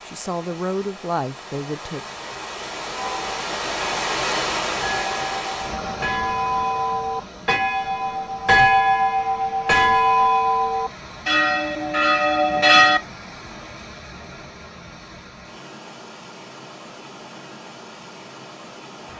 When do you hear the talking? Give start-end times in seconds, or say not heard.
0.1-2.0.